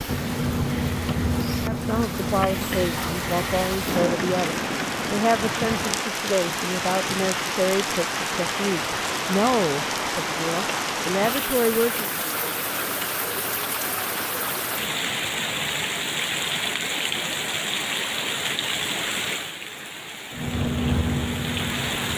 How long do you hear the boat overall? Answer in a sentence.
You can hear the boat for 6 seconds altogether.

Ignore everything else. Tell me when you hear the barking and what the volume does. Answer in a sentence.
You can't hear the barking here.